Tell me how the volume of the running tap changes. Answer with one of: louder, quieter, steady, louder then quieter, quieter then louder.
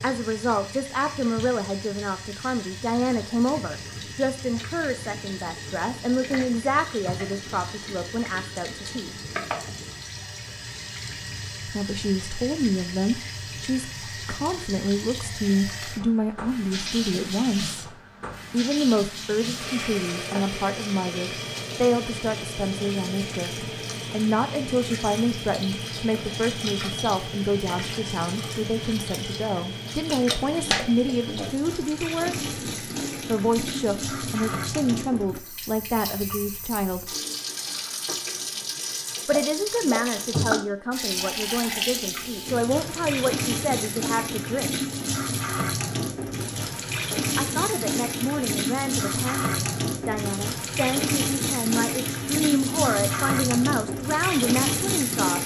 louder.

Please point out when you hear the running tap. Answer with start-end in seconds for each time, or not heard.
0.0-55.4.